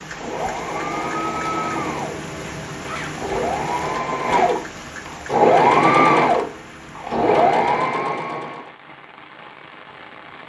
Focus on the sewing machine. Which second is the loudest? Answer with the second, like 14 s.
6 s.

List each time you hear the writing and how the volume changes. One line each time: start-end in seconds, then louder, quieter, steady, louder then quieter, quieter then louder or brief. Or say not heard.
not heard.